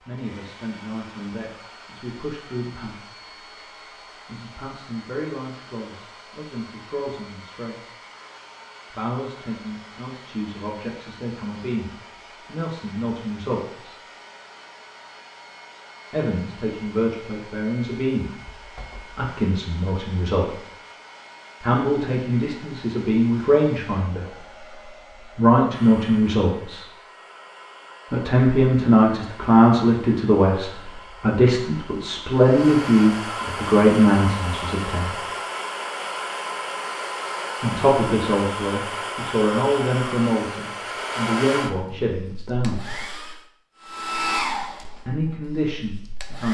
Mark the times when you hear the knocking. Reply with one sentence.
The knocking can be heard from 18.6 to 19.1 s.